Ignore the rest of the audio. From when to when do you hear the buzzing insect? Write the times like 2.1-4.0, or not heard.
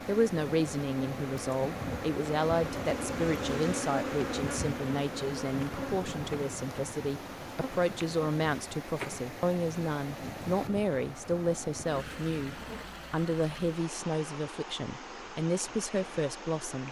0.0-12.8.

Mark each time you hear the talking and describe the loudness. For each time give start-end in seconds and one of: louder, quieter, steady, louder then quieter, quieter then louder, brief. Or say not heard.
0.1-16.8 steady.